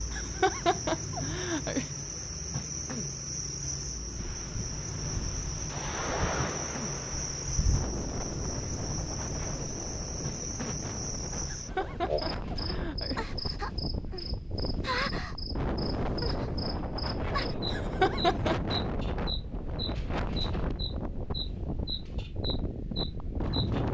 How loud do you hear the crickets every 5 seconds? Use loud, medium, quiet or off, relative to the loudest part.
loud, loud, loud, loud, medium.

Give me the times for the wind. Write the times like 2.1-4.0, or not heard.
4.2-23.8.